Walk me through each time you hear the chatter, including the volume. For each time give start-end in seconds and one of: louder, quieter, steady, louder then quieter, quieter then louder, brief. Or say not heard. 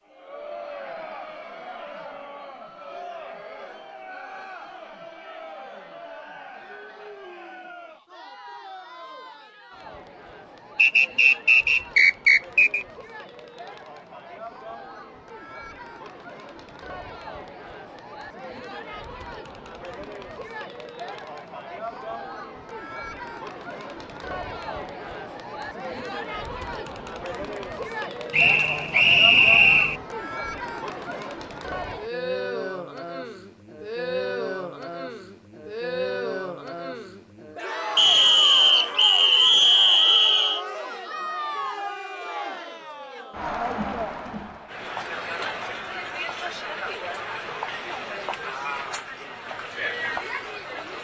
0.1-50.9 louder.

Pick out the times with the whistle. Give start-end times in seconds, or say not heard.
10.8-12.8, 28.3-29.9, 38.0-40.6.